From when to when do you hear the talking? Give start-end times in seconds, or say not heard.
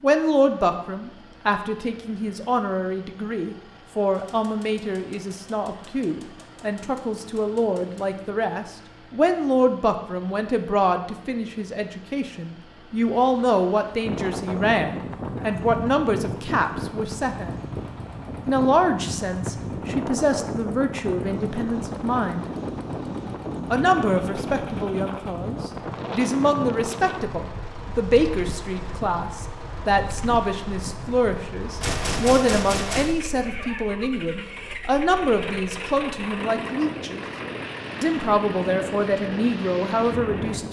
0.0-17.6, 18.4-22.4, 23.7-37.2, 38.0-40.6.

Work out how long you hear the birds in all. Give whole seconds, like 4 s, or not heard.
not heard.